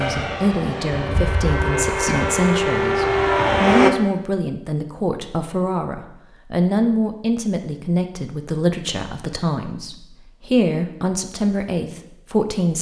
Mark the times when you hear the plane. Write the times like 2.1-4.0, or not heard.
0.0-3.9.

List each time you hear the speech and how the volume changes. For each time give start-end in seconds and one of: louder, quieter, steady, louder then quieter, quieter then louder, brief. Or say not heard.
0.0-12.7 steady.